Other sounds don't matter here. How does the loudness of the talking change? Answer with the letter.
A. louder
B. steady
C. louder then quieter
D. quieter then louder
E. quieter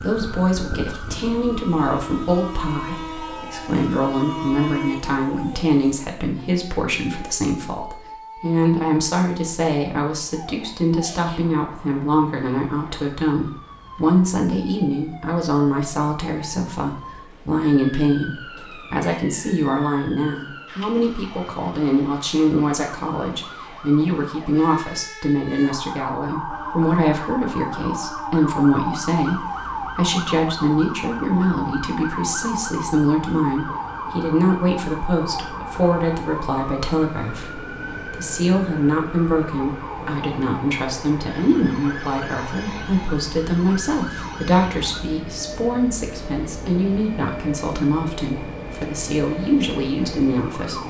B.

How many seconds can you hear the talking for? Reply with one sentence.
You can hear the talking for 51 seconds altogether.